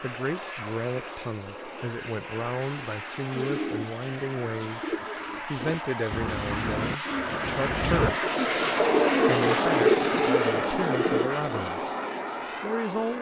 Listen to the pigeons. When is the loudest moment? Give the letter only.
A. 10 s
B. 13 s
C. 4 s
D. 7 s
A.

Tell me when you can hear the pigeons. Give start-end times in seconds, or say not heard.
3.2-11.3.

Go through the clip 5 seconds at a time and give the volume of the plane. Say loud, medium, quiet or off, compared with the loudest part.
medium, loud, loud.